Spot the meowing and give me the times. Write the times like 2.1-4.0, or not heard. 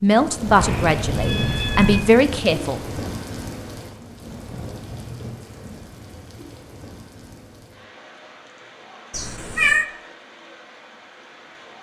0.5-2.0, 9.1-9.8.